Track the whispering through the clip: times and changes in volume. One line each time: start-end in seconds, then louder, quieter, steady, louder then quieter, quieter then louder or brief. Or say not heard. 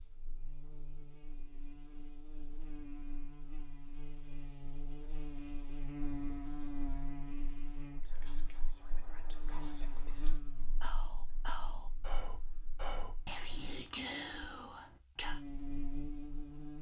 7.8-15.4 louder.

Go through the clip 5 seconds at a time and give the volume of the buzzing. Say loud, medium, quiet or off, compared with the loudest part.
medium, loud, quiet, loud.